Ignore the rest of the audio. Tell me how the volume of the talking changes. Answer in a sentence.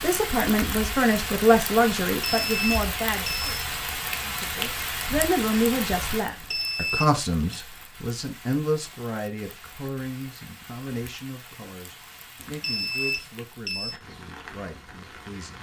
The volume of the talking goes down.